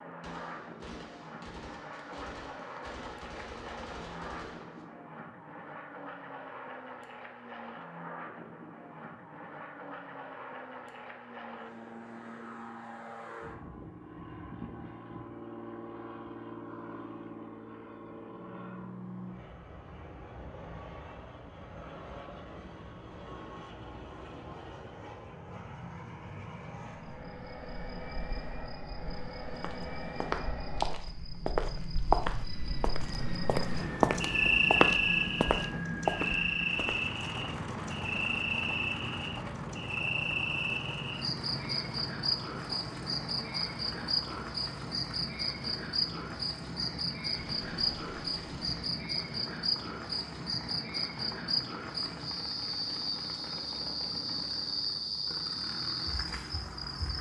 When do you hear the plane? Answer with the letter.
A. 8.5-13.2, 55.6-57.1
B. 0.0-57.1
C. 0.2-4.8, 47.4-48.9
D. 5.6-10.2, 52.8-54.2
B.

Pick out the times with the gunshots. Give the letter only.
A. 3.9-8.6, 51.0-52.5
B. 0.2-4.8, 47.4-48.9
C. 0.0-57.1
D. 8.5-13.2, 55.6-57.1
B.